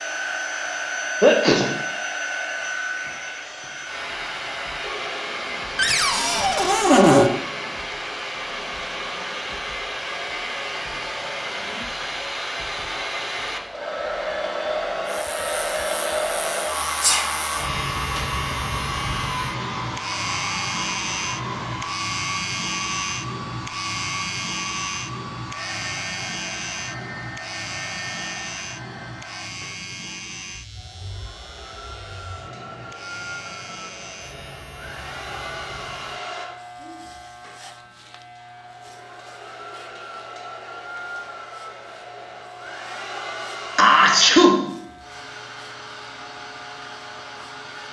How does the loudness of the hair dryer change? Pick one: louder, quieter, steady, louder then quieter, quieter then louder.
quieter.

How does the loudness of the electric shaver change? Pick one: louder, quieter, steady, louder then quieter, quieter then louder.
quieter.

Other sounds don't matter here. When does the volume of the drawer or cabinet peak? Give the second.
7 s.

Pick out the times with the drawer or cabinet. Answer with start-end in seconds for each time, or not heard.
5.8-7.3.